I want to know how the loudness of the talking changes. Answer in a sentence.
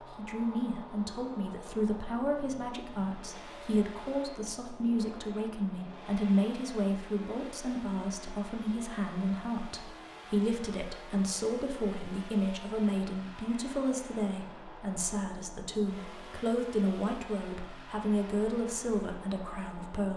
The loudness of the talking stays about the same.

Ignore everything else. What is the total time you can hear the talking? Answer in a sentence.
You can hear the talking for 20 seconds altogether.